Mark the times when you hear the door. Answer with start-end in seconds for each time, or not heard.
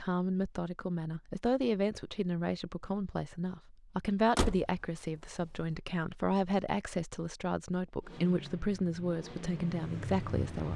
4.3-5.7.